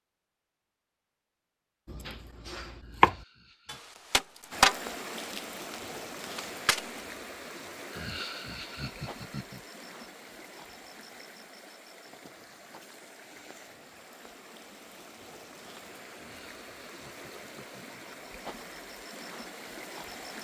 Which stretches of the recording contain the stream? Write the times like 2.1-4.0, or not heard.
4.5-20.3.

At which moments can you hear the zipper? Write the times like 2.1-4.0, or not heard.
not heard.